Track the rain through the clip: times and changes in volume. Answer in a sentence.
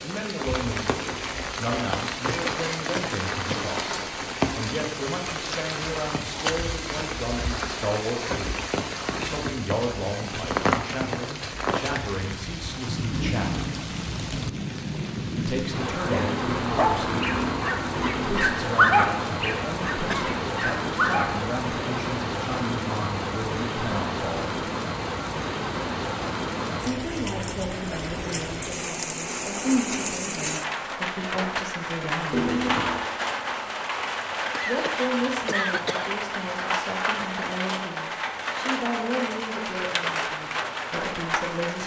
The rain can be heard from 0.0 to 41.8 s, at a steady volume.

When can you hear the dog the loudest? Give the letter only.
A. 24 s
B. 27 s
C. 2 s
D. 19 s
D.